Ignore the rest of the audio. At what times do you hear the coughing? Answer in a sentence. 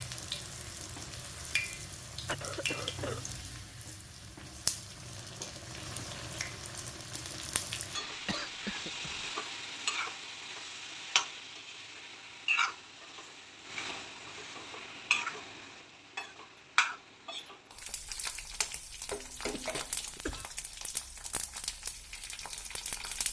You can hear the coughing from 2.2 to 3.3 s, from 7.9 to 9.3 s and from 19.5 to 20.4 s.